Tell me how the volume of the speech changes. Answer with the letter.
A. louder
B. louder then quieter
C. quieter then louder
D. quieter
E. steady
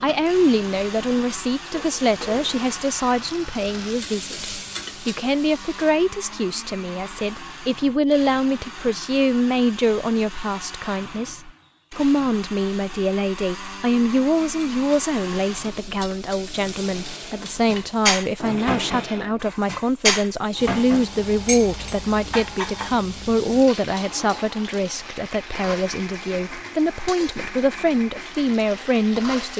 E.